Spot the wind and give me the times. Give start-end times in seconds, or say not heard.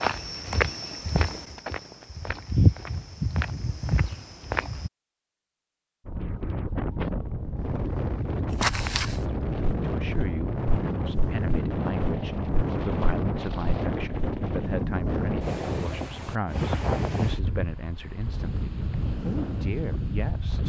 6.0-20.6.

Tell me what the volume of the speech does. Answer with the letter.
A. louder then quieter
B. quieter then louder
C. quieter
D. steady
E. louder
D.